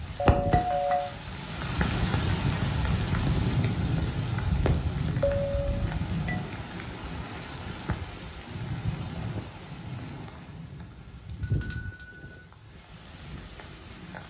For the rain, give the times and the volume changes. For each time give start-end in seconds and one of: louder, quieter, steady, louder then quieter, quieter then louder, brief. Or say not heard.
0.0-14.2 quieter.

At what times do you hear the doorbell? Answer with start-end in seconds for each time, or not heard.
0.1-1.1, 5.2-6.4, 11.4-12.4.